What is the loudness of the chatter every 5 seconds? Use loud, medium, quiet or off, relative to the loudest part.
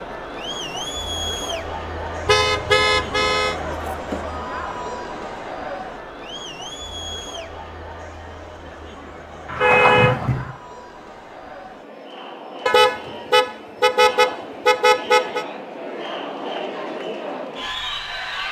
loud, medium, medium, loud.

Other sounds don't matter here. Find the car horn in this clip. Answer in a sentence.
You can hear the car horn from 2.2 to 3.5 s, from 9.4 to 10.6 s and from 12.7 to 15.4 s.